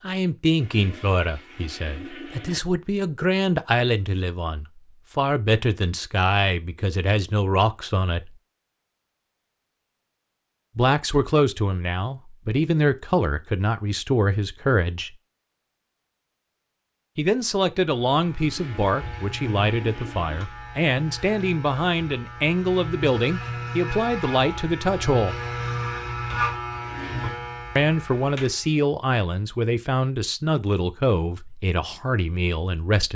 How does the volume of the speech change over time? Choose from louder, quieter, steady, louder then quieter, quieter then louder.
steady.